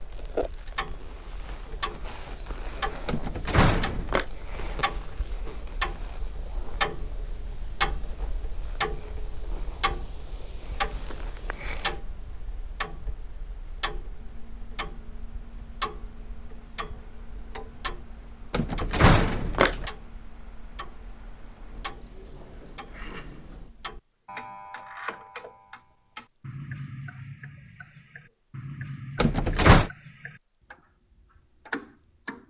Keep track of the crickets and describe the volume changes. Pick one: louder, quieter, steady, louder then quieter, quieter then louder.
louder.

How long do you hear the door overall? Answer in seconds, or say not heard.
3 s.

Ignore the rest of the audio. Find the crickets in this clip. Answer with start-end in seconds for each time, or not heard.
0.0-32.4.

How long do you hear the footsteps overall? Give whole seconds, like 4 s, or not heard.
not heard.